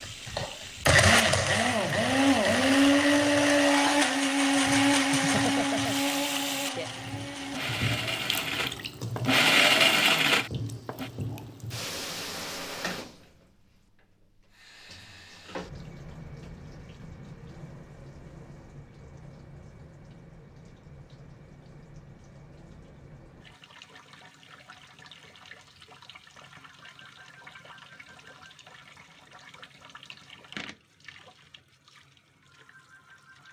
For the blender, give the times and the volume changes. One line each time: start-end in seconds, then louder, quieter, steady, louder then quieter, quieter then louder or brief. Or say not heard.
0.0-11.1 quieter then louder.